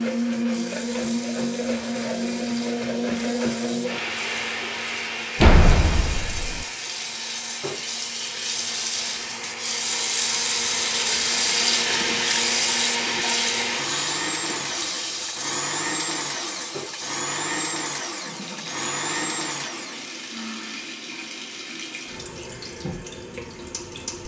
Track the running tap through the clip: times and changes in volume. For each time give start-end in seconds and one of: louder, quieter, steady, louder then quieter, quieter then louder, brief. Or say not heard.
0.0-24.2 louder then quieter.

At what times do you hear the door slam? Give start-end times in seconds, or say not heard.
5.4-6.7.